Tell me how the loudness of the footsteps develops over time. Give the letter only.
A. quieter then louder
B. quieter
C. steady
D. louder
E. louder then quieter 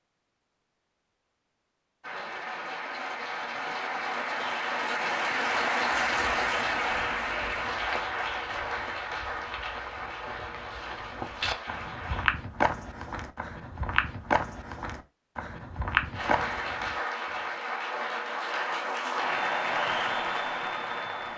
D.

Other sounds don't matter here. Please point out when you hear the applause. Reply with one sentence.
You can hear the applause from 2.0 to 12.2 s and from 16.1 to 21.3 s.